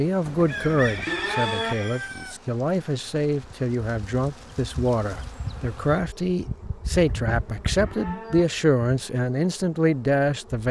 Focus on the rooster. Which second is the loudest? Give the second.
1 s.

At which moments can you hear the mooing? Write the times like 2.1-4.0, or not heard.
0.2-1.8, 6.9-8.4.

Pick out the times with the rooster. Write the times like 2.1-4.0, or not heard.
0.5-2.4.